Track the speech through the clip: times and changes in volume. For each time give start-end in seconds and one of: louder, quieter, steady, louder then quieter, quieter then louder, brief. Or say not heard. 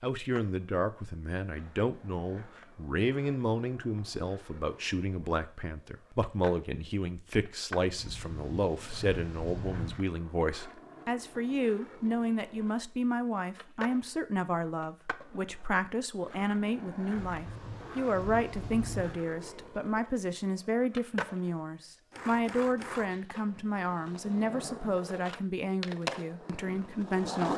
0.0-27.5 steady.